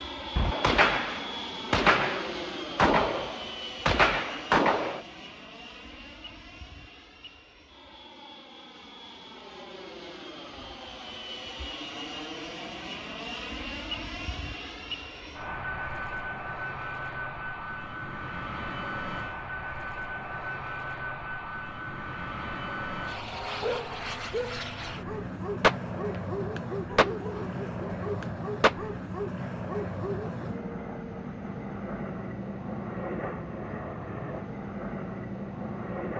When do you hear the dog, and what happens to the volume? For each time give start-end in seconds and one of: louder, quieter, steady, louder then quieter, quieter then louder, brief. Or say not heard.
23.4-30.4 steady.